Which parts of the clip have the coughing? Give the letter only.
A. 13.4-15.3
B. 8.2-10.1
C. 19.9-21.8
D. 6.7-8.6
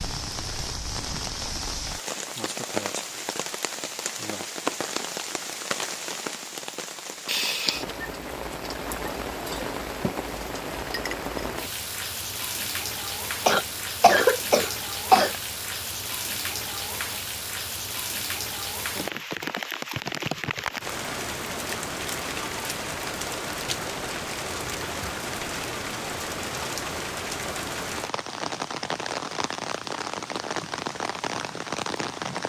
A.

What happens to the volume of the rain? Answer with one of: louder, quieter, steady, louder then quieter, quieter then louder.
steady.